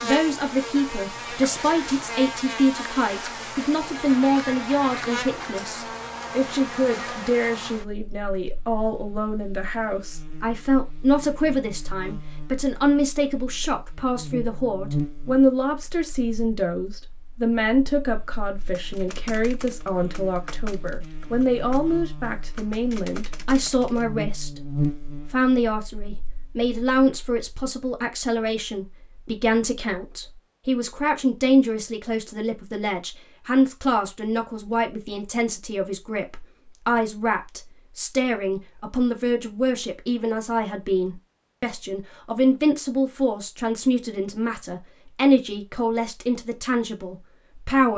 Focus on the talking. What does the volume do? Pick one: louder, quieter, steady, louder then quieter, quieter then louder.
steady.